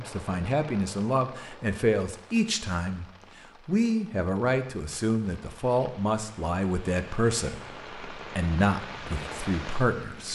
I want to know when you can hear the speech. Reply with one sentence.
The speech can be heard from 0.0 to 3.0 s and from 3.6 to 10.2 s.